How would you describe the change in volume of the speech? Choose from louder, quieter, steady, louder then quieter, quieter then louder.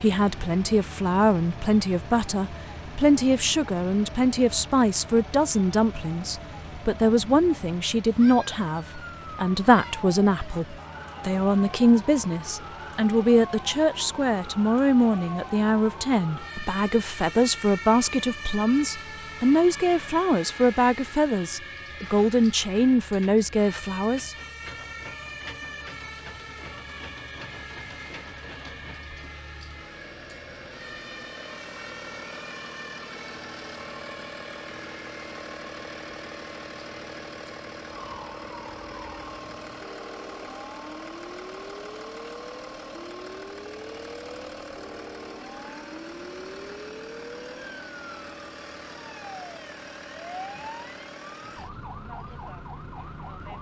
steady.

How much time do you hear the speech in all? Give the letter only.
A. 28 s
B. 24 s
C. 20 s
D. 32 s
B.